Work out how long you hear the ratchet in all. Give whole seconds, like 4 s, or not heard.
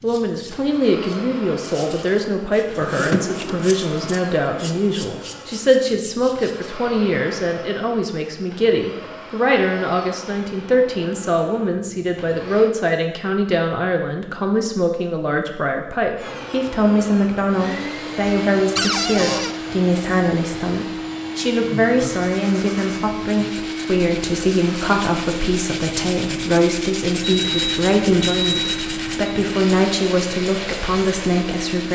not heard.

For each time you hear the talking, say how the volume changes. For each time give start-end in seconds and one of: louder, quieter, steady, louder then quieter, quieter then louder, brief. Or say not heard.
0.0-31.9 steady.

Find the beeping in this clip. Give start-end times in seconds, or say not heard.
27.2-29.4.